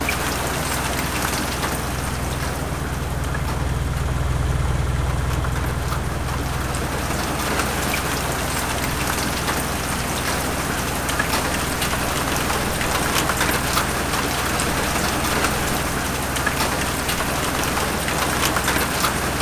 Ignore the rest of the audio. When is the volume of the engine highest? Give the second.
4 s.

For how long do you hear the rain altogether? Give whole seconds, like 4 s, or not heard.
19 s.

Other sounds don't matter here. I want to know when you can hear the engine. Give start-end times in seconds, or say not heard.
0.0-19.3.